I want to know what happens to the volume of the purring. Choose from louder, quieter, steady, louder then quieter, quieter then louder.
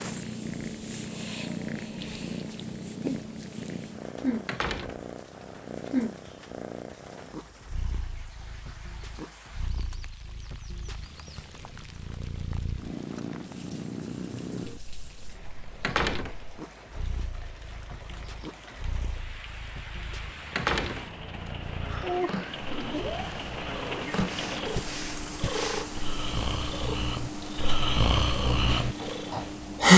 quieter then louder.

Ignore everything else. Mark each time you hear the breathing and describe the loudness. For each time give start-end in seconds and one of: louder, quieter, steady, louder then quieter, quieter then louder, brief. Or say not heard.
21.9-29.9 louder.